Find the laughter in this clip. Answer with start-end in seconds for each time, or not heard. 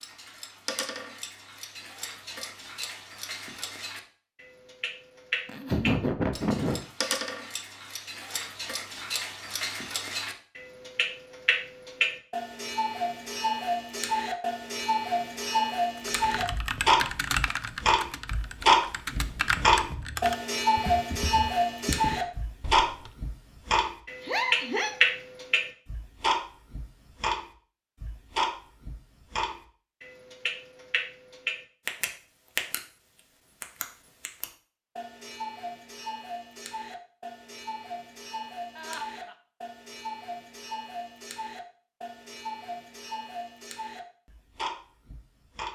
5.5-6.8, 24.2-24.9, 38.8-39.4.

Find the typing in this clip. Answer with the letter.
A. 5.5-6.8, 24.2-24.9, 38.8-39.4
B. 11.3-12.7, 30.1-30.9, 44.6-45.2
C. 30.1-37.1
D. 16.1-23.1
D.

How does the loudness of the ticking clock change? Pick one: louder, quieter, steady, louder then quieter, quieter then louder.
louder then quieter.